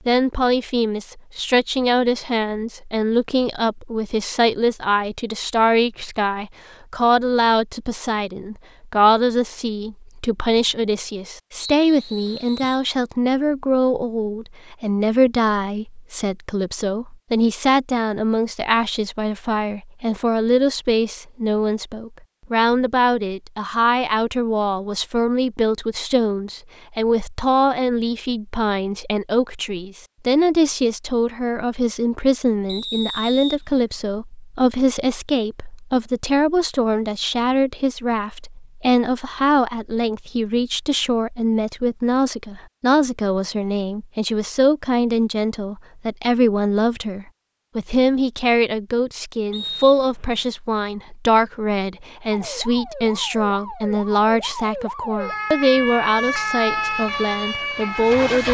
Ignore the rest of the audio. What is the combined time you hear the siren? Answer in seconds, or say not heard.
6 s.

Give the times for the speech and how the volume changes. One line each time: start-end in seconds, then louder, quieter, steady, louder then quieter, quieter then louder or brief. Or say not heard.
0.1-58.4 steady.